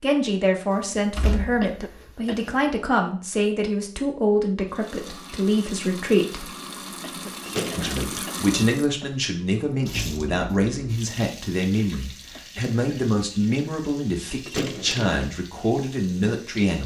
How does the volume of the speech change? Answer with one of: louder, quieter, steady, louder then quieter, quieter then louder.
steady.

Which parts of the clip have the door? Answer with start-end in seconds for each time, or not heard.
0.7-2.6, 7.5-8.2, 14.4-15.2.